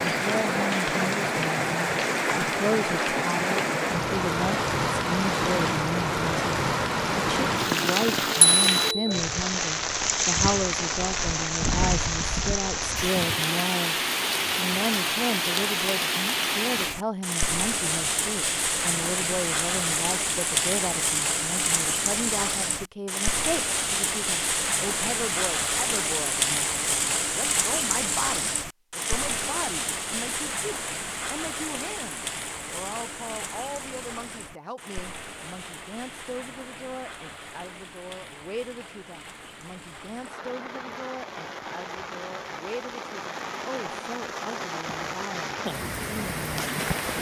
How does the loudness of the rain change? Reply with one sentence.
The volume of the rain goes down.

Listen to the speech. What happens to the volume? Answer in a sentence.
The volume of the speech goes down.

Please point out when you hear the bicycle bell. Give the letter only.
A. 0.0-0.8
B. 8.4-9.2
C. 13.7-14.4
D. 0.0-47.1
B.